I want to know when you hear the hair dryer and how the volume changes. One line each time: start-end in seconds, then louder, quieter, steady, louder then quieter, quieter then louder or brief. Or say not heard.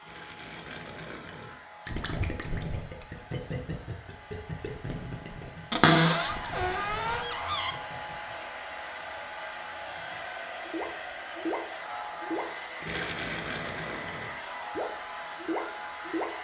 0.0-16.3 louder.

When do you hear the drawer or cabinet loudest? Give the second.
6 s.